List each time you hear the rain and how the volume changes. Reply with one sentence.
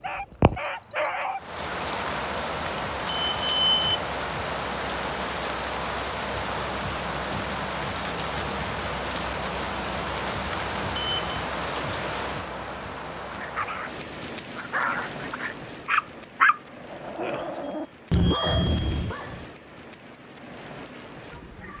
The rain can be heard from 0.0 to 21.7 s, getting quieter.